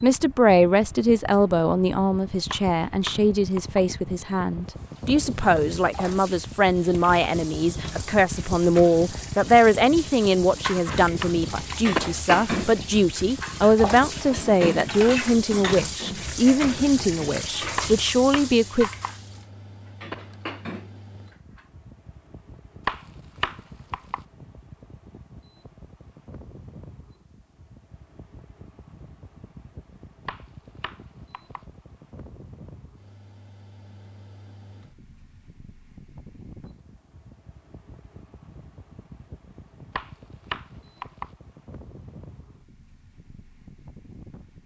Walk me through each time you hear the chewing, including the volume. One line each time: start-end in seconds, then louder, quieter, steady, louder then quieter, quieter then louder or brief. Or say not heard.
not heard.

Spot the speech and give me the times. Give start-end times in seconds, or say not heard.
0.0-18.9.